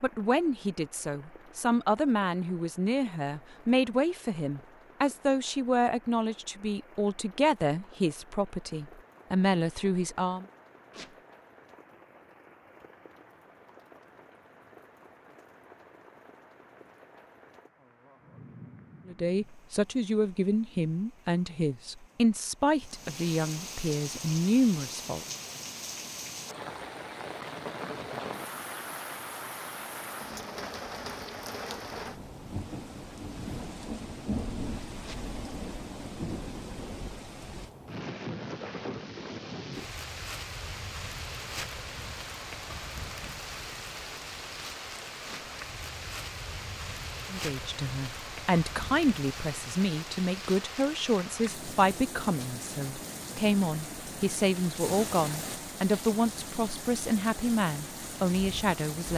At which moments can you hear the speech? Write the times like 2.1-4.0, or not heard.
0.0-10.4, 19.1-25.2, 47.3-59.1.